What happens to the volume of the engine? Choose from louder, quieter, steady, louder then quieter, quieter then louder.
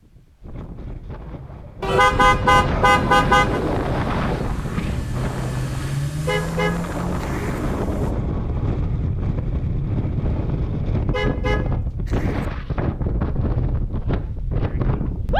louder then quieter.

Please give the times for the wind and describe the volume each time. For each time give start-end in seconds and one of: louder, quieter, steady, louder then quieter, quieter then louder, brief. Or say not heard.
0.0-15.3 steady.